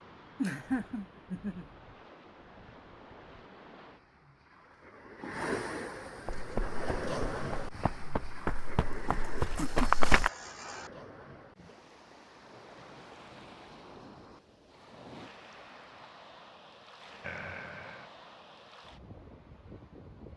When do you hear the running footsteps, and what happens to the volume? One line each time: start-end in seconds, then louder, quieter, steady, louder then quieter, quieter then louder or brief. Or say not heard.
6.2-10.3 louder.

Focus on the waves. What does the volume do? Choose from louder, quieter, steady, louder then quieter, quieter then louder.
louder then quieter.